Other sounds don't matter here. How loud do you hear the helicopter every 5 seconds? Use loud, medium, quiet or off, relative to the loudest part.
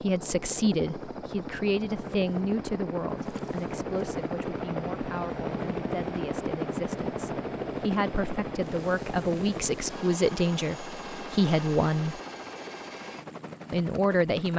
loud, loud, medium.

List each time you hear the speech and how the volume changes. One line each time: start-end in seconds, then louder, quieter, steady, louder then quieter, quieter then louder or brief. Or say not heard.
0.0-12.2 quieter then louder
13.7-14.5 brief.